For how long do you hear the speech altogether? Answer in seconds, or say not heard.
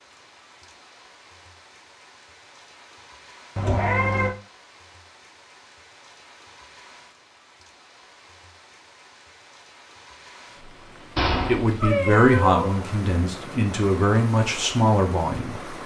4 s.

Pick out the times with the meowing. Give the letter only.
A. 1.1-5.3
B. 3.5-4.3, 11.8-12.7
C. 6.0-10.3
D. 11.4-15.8
B.